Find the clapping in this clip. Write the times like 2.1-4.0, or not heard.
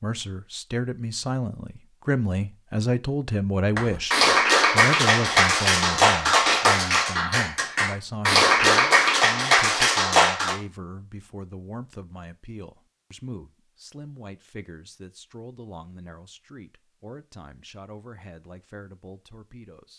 3.8-10.6.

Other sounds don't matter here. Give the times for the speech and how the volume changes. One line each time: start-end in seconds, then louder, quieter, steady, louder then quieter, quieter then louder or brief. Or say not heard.
0.0-19.9 quieter.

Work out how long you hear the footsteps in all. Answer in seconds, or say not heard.
not heard.